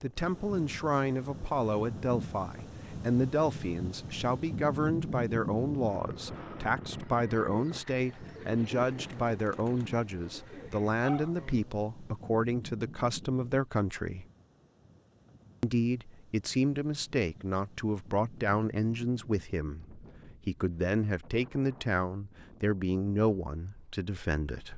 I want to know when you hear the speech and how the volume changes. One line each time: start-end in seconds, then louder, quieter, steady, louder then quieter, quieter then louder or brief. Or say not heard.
0.0-14.2 steady
15.6-24.7 steady.